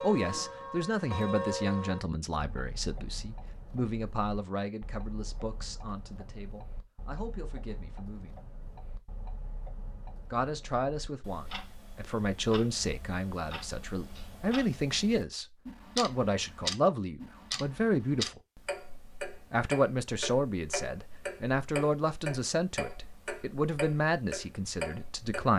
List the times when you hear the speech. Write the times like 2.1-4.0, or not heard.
0.0-8.3, 10.3-18.4, 19.5-25.5.